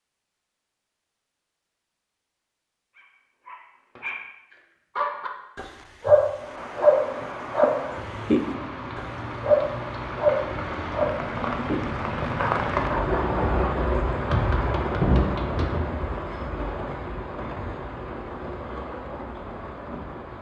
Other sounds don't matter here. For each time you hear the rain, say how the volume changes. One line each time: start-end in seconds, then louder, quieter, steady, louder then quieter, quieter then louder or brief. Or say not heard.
6.3-20.3 louder then quieter.